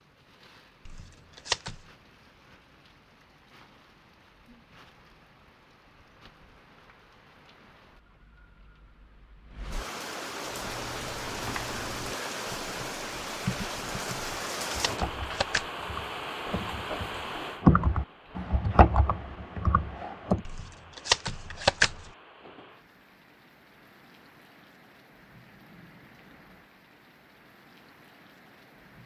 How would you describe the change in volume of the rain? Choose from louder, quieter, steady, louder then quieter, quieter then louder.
louder then quieter.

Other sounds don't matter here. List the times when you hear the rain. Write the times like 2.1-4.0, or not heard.
0.0-29.0.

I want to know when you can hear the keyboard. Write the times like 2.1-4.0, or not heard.
10.4-20.4.